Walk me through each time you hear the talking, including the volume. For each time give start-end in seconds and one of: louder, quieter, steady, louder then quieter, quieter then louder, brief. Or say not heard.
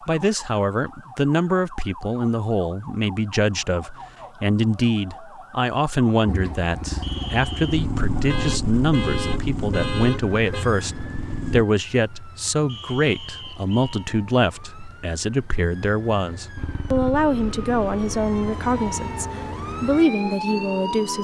0.1-21.1 steady.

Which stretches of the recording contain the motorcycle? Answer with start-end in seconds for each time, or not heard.
6.2-11.7, 16.6-21.1.